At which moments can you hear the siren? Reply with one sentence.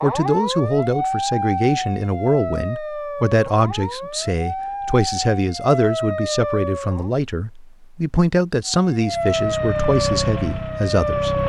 You can hear the siren from 0.0 to 7.1 s and from 8.7 to 11.4 s.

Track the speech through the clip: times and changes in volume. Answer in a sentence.
You can hear the speech from 0.0 to 11.4 s, at a steady volume.